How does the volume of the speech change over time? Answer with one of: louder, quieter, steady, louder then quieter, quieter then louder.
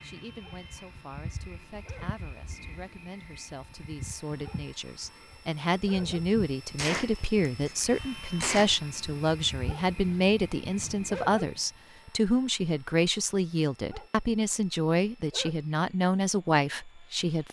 louder.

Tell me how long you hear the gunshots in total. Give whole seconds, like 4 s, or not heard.
2 s.